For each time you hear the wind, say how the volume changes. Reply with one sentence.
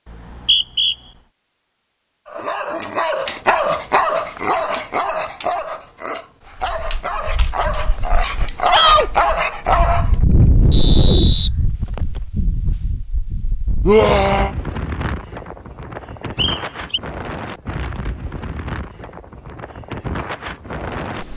The wind can be heard from 6.5 to 21.3 s, getting louder then quieter.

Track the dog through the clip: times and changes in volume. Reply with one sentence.
You can hear the dog from 2.2 to 10.2 s, getting quieter then louder.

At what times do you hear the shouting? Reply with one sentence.
You can hear the shouting from 8.7 to 9.1 s and from 13.8 to 14.5 s.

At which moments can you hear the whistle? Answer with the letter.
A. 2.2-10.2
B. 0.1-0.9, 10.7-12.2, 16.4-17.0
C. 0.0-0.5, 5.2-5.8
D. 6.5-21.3
B.